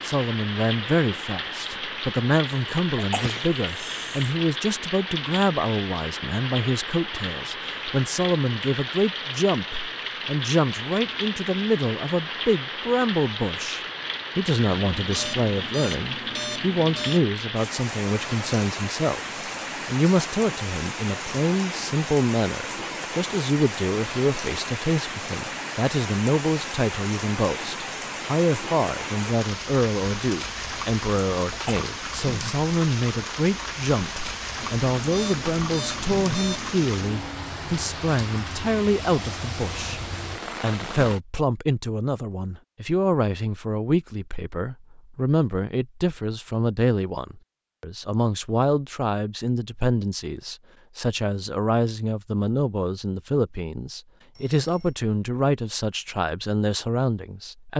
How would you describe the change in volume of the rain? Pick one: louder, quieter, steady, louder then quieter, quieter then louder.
steady.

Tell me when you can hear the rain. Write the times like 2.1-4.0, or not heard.
0.0-41.2.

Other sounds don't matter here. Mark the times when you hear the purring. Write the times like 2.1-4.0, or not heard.
not heard.